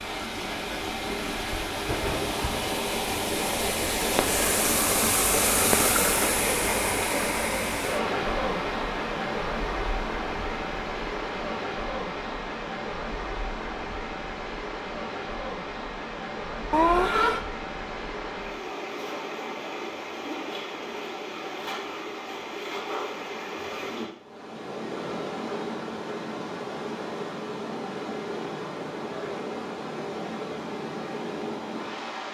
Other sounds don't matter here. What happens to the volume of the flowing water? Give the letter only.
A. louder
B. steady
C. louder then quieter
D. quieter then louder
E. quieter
E.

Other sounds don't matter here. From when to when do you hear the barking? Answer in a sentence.
You can't hear the barking here.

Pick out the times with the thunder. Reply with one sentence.
The thunder can be heard from 1.9 to 2.8 s.